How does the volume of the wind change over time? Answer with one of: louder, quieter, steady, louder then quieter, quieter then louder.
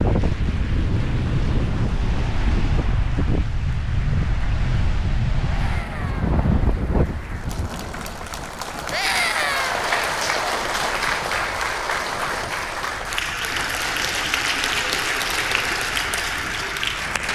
quieter.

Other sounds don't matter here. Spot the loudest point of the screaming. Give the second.
9 s.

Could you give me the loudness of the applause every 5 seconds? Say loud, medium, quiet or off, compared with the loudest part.
quiet, medium, loud, loud.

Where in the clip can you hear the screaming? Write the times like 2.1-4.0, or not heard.
5.5-6.3, 8.9-9.8.